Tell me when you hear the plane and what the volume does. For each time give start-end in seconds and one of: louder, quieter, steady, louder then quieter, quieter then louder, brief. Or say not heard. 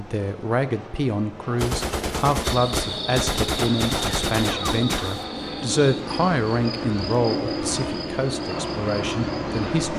0.0-9.9 louder.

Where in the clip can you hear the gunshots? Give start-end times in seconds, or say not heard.
1.6-5.2.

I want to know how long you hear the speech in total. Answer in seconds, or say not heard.
10 s.